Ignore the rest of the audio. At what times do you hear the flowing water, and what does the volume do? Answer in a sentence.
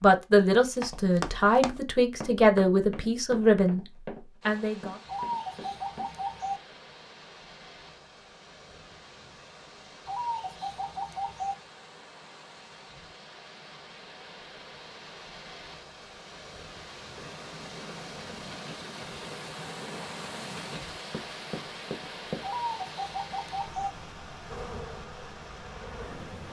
The flowing water can be heard from 4.4 to 26.4 s, getting louder.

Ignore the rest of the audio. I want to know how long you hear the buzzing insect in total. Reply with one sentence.
The buzzing insect can be heard for 2 seconds in total.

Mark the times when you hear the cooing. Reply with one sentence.
You can hear the cooing from 5.0 to 6.6 s, from 10.1 to 11.6 s and from 22.4 to 23.9 s.